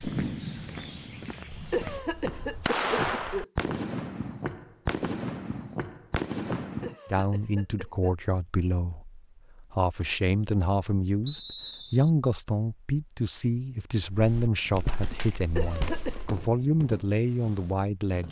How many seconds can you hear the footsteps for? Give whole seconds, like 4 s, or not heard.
9 s.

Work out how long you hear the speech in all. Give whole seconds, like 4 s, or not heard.
11 s.